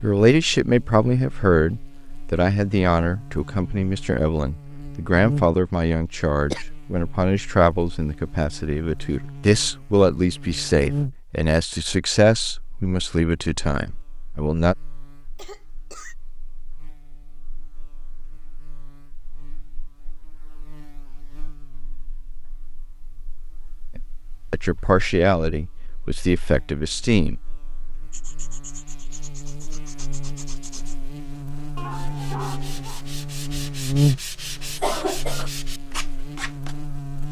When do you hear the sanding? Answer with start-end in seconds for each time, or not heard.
28.1-30.9, 31.8-36.8.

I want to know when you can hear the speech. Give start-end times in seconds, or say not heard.
0.0-14.8, 23.9-27.4.